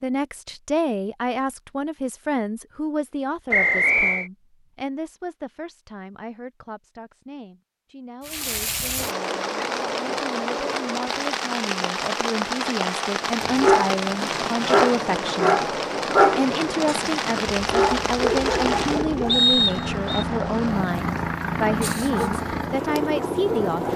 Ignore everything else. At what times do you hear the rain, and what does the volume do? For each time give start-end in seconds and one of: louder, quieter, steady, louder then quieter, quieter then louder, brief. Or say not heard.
8.2-23.9 quieter.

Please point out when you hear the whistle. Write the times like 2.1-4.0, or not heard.
3.5-4.3, 19.2-20.2.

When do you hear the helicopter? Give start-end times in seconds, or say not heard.
13.3-23.9.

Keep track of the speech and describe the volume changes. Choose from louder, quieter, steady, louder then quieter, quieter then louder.
quieter then louder.